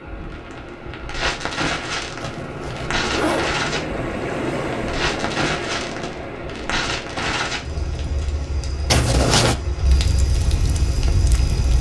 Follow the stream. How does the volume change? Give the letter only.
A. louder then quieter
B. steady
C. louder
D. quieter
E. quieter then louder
A.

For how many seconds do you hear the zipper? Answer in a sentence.
The zipper can be heard for 2 seconds in total.